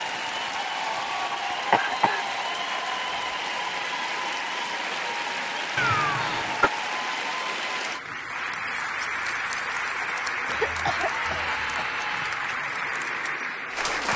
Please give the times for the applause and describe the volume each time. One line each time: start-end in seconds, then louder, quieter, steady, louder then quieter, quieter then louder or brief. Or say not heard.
0.0-14.1 steady.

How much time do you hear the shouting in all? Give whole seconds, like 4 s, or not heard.
2 s.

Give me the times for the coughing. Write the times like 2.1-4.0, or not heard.
1.7-2.2, 5.8-6.7, 10.4-12.3.